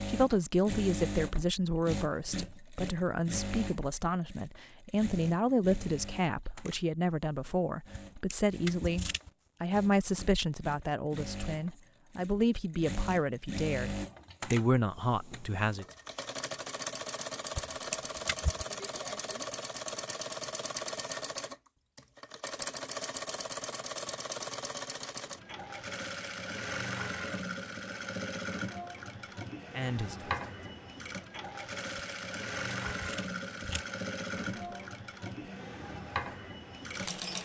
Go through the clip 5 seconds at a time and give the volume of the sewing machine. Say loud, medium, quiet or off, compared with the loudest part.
loud, medium, loud, loud, loud, loud, loud, loud.